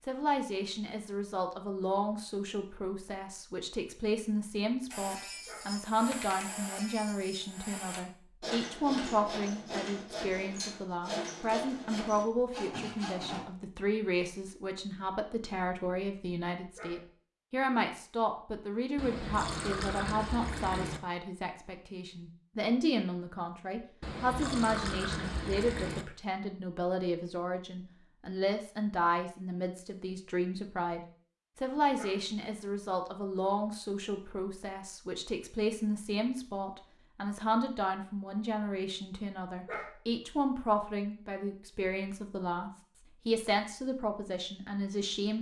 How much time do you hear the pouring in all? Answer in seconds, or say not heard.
4 s.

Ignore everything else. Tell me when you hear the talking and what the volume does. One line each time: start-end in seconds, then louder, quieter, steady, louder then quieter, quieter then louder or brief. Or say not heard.
0.1-45.3 steady.